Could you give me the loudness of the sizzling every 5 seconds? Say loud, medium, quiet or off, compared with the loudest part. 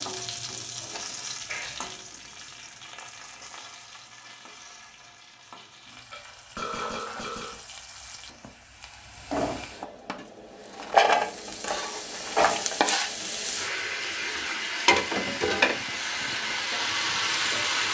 quiet, quiet, loud, loud.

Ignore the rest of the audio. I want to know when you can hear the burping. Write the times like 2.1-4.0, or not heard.
6.1-7.6.